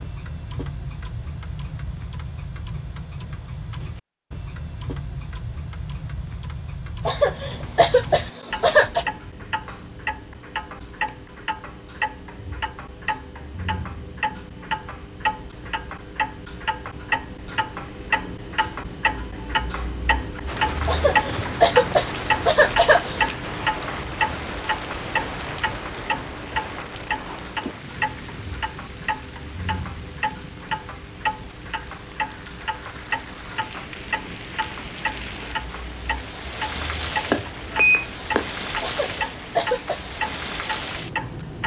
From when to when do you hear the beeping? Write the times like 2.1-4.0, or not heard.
37.3-38.5.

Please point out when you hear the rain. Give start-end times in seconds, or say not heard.
20.4-41.6.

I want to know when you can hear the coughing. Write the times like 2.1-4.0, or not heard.
7.0-9.1, 20.9-23.2, 38.8-40.0.